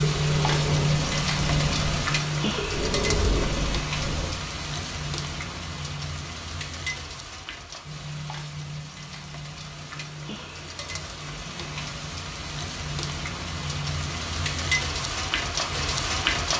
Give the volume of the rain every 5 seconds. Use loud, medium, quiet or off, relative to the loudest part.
loud, medium, medium, loud.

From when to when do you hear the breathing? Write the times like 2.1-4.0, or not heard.
0.0-4.4.